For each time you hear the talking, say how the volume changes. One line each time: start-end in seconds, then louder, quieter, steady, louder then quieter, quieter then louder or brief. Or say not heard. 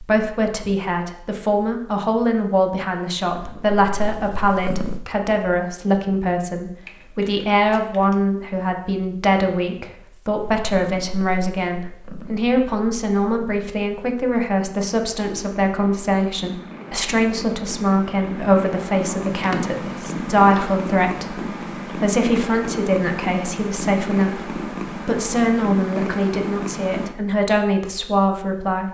0.0-28.9 steady.